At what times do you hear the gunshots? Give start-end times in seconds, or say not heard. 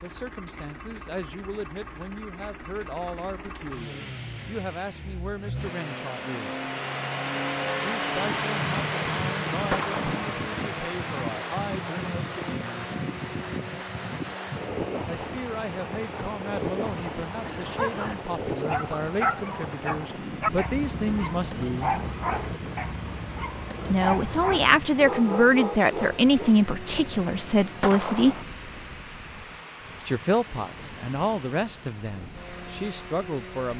9.7-10.2, 27.8-28.4.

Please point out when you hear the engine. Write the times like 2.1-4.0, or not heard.
0.0-33.7.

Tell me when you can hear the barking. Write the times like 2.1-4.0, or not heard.
17.4-26.5.